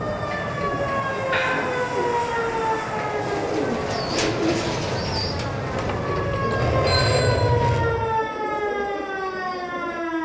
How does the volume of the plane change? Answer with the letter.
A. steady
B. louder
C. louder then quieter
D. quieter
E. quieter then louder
B.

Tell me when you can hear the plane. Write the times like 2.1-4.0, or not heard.
0.0-8.2.